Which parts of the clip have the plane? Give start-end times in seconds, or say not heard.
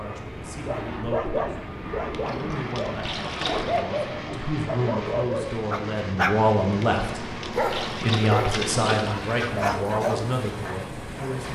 0.0-11.4.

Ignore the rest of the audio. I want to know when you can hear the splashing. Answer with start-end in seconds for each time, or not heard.
2.1-3.9, 6.8-9.2.